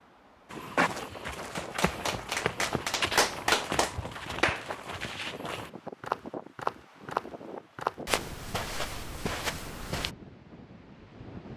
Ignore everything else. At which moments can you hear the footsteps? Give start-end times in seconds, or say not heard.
0.5-10.1.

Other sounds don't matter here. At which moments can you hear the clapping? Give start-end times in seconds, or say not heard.
1.5-4.7.